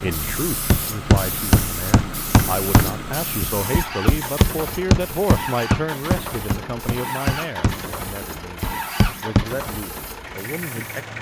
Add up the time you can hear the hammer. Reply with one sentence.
The hammer can be heard for 9 seconds in total.